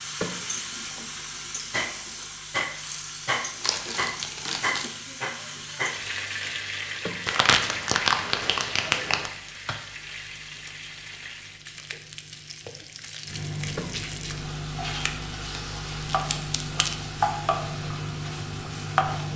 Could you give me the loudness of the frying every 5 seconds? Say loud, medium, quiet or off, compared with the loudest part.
loud, loud, medium, loud.